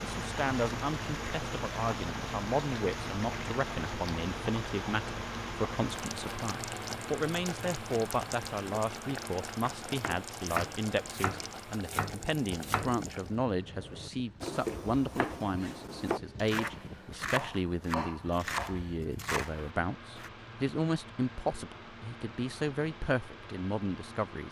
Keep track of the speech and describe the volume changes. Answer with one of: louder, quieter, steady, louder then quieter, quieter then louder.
steady.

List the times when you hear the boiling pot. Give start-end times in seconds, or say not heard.
0.0-13.3.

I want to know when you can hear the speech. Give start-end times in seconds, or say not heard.
0.0-24.4.